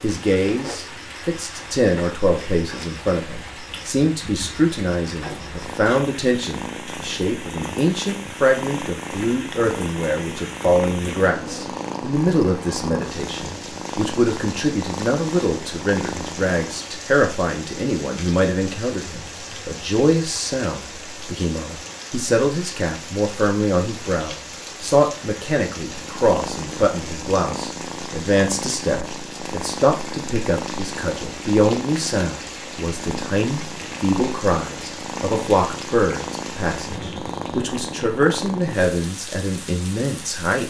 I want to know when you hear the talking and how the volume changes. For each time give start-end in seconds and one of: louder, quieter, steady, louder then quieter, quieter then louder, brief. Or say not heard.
0.0-40.6 steady.